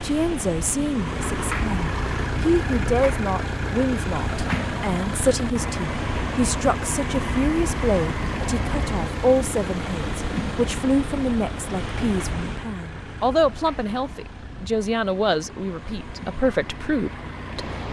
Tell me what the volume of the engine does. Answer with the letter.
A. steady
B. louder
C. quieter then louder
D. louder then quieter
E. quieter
E.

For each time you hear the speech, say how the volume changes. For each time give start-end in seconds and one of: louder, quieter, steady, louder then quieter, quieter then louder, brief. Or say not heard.
0.0-17.6 steady.